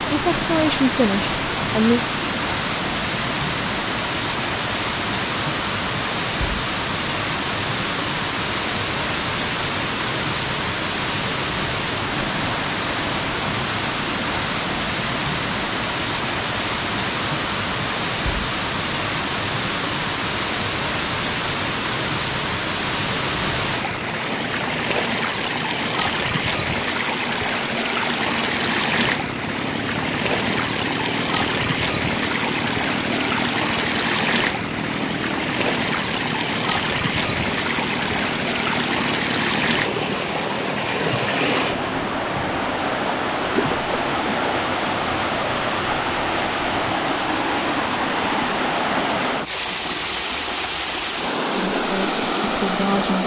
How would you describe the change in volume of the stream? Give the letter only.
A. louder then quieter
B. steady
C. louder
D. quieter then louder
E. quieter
B.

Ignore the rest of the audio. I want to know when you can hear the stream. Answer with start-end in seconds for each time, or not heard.
0.0-53.2.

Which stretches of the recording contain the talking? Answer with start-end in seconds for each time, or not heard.
0.0-2.0, 51.5-53.2.